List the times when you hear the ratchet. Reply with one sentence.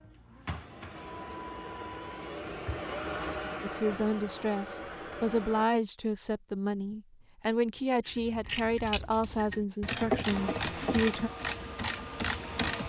You can hear the ratchet from 8.1 to 12.8 s.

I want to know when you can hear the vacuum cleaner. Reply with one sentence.
The vacuum cleaner can be heard from 0.0 to 5.7 s and from 10.2 to 12.8 s.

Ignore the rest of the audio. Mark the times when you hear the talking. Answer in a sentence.
The talking can be heard from 3.6 to 11.3 s.